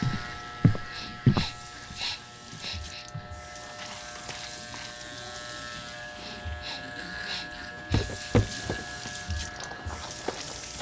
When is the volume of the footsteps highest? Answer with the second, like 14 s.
1 s.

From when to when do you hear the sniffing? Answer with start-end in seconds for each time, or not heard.
0.9-3.0, 6.2-8.2.